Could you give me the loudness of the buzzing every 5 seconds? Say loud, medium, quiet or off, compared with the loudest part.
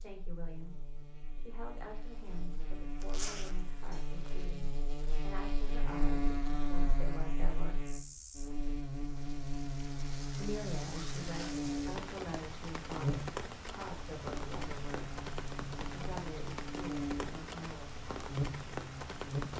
medium, loud, loud, loud.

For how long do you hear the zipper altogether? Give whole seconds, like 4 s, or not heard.
2 s.